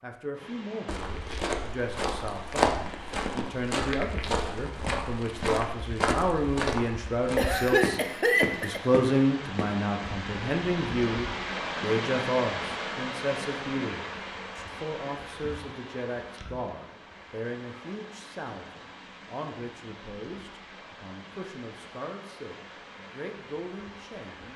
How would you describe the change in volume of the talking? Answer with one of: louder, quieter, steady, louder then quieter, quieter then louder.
louder then quieter.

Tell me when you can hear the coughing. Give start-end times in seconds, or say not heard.
7.3-8.8.